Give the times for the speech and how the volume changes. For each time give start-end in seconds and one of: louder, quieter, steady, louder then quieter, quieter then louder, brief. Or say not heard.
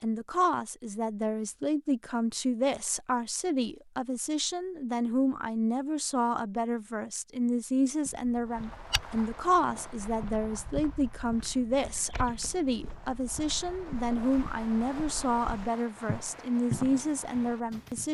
0.0-18.1 steady.